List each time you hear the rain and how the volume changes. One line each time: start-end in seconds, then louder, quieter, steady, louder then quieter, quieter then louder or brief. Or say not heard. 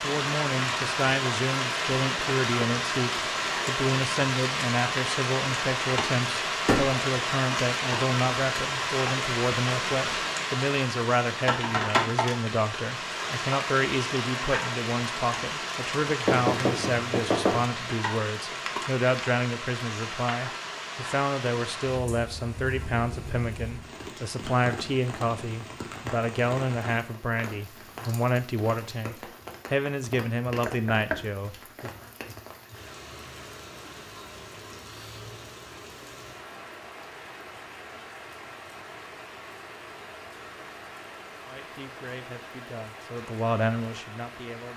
0.0-44.7 quieter.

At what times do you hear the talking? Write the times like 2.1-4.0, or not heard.
0.0-31.9, 41.5-44.7.